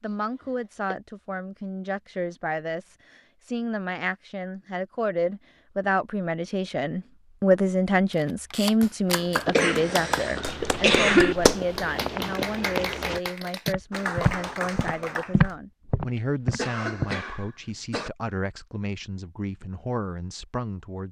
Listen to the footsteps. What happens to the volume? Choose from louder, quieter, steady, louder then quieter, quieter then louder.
louder.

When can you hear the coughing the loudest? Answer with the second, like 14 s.
11 s.